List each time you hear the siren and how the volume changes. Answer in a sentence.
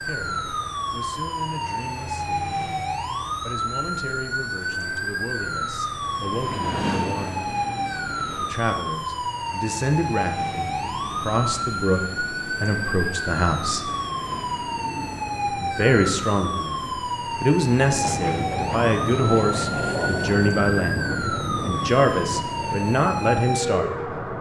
The siren can be heard from 0.0 to 24.3 s, at a steady volume.